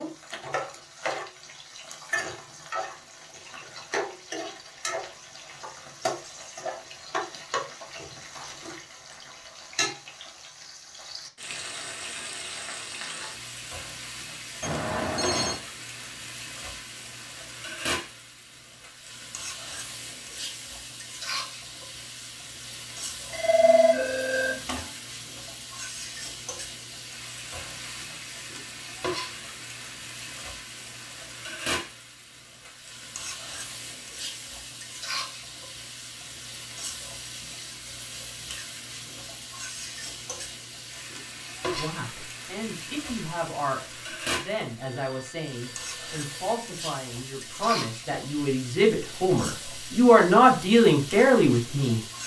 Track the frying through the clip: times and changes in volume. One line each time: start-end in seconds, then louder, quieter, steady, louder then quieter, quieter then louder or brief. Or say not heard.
0.0-52.2 steady.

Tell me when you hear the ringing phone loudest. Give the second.
24 s.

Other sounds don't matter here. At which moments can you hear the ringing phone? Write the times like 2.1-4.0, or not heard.
14.6-15.6, 23.3-24.9, 44.8-46.6.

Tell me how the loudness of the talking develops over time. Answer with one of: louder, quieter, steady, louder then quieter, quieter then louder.
louder.